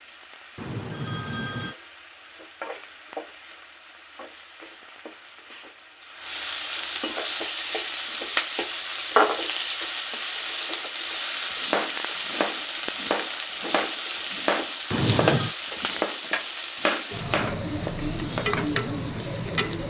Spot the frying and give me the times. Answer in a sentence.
The frying can be heard from 0.0 to 19.8 s.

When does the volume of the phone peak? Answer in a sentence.
The loudest moment of the phone is at 15 seconds.